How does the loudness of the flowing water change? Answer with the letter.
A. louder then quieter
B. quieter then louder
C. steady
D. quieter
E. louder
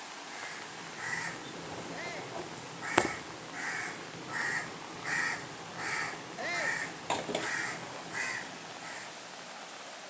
C.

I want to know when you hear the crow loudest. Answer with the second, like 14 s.
3 s.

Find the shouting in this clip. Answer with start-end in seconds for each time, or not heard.
1.9-2.4, 6.3-6.8.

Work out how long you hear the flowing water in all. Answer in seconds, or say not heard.
10 s.